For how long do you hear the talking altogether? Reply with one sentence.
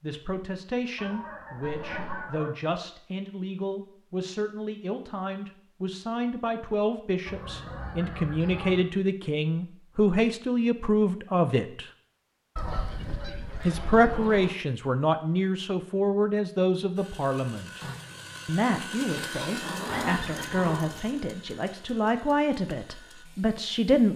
You can hear the talking for 22 seconds altogether.